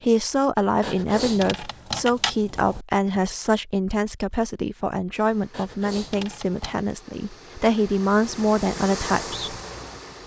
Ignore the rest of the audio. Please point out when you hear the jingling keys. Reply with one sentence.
You can hear the jingling keys from 0.8 to 2.9 s and from 5.5 to 6.8 s.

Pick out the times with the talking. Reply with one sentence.
The talking can be heard from 0.0 to 9.6 s.